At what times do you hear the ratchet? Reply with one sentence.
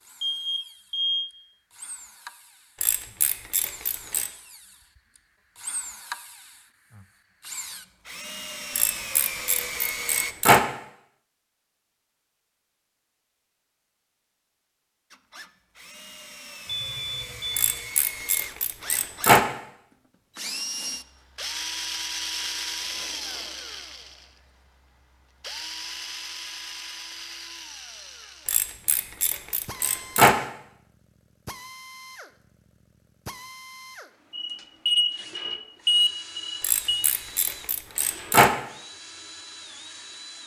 The ratchet can be heard from 2.8 to 4.3 s, from 8.8 to 10.6 s, from 17.6 to 19.4 s, from 28.4 to 30.4 s and from 36.6 to 38.5 s.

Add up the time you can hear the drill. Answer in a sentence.
You can hear the drill for 36 seconds altogether.